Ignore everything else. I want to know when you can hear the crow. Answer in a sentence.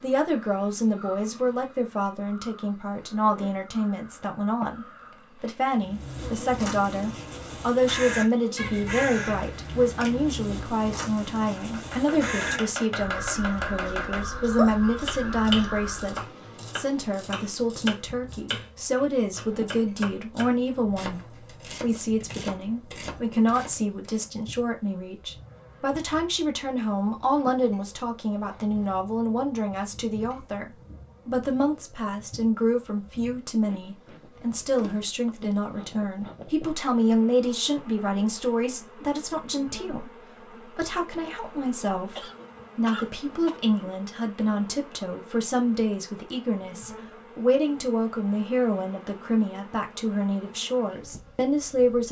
You can hear the crow from 5.7 to 16.2 s.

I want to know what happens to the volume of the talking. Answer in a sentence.
The volume of the talking stays about the same.